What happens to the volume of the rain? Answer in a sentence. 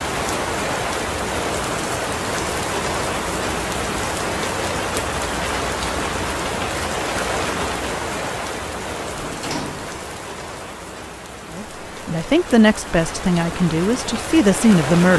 The volume of the rain goes down.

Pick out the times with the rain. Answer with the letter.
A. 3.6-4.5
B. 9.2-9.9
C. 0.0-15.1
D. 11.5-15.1
C.